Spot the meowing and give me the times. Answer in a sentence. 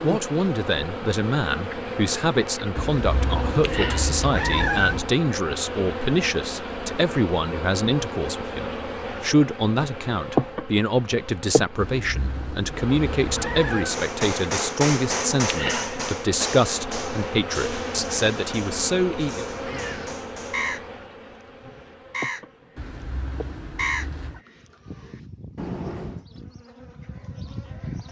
You can hear the meowing from 2.8 to 5.1 s, from 11.8 to 13.9 s and from 22.8 to 24.4 s.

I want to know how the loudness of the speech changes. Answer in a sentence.
The loudness of the speech stays about the same.